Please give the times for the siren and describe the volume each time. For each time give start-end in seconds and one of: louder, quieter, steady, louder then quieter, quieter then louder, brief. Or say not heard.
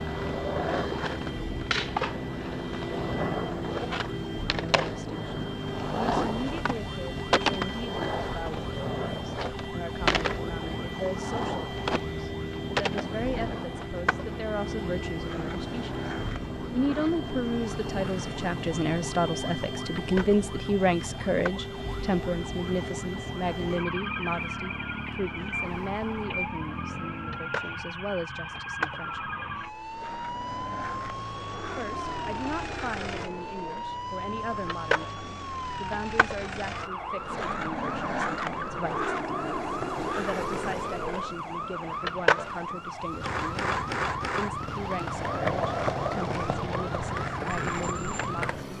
0.0-48.5 steady.